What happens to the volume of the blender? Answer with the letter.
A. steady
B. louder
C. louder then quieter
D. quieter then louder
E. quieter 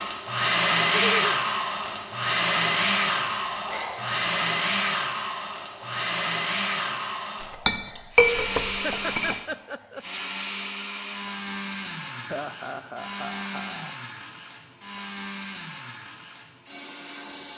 E.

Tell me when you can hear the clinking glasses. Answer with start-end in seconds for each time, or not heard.
7.5-9.3.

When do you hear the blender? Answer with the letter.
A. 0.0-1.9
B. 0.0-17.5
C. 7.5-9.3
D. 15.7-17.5
B.